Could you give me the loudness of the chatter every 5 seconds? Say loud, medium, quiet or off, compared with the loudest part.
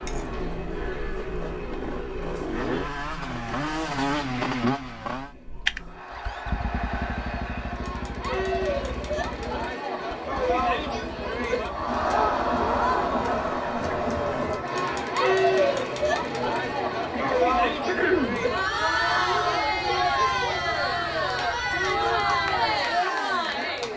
quiet, medium, loud, loud, loud.